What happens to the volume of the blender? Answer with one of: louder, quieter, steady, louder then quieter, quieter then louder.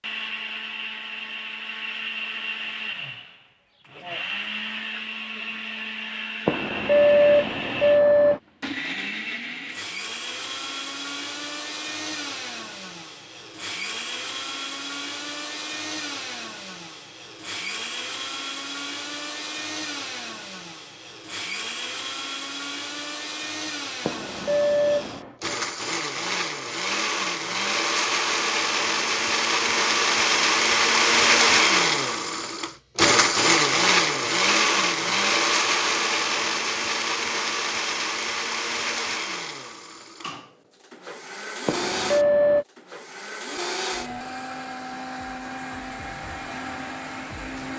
louder then quieter.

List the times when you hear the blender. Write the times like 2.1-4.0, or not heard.
0.0-47.7.